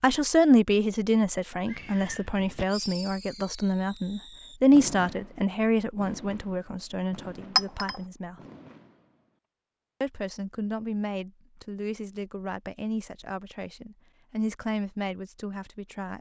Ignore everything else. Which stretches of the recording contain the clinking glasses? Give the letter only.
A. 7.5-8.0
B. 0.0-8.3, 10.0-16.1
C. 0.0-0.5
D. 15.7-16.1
A.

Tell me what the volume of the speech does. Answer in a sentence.
The volume of the speech goes down.